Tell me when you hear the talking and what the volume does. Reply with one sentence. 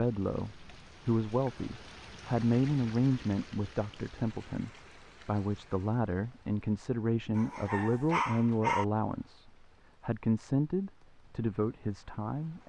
The talking can be heard from 0.0 to 12.6 s, at a steady volume.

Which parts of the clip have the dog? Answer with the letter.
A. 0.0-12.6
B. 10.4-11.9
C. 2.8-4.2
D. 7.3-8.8
D.